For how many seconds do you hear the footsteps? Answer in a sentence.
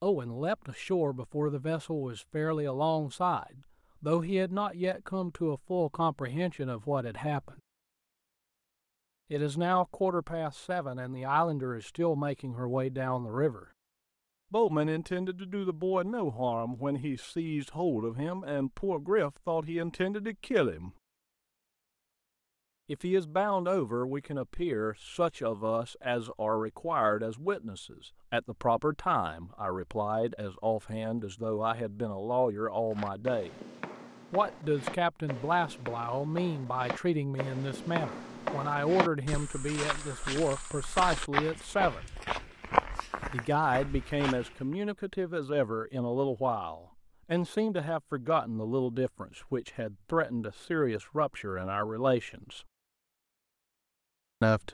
You can hear the footsteps for 12 seconds altogether.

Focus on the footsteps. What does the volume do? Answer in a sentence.
The volume of the footsteps goes up.